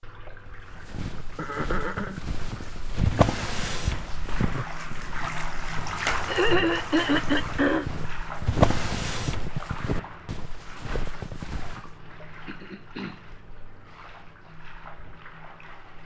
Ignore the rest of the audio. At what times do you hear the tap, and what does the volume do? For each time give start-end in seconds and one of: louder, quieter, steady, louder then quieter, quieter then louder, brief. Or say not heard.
0.0-16.0 louder then quieter.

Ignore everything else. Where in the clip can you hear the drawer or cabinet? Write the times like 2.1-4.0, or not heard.
3.0-4.1, 8.4-9.5.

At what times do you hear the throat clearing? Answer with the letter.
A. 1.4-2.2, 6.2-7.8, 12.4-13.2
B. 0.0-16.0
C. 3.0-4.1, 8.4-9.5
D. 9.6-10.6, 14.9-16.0
A.